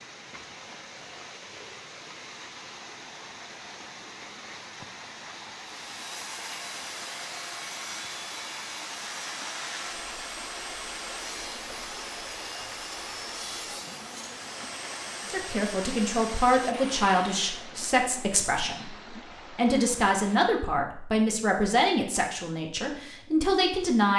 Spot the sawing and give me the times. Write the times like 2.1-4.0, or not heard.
5.8-17.4.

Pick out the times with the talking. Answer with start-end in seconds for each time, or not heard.
15.2-24.1.